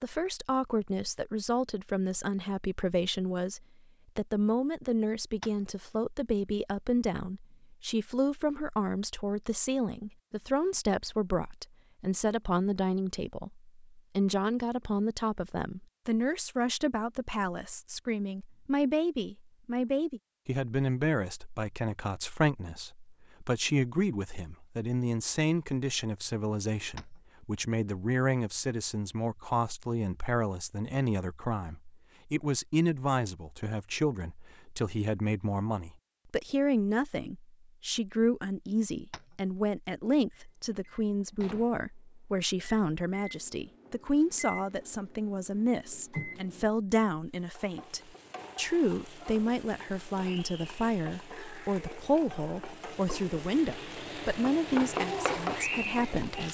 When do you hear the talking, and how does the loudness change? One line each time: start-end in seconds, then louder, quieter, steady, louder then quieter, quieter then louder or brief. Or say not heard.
0.0-56.4 steady.